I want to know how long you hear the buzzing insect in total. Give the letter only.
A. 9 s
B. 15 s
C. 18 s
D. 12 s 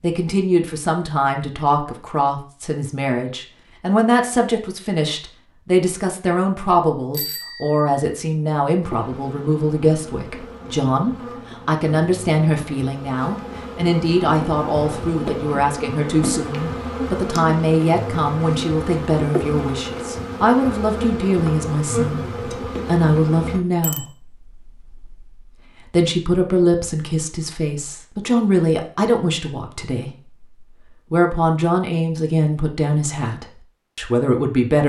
B.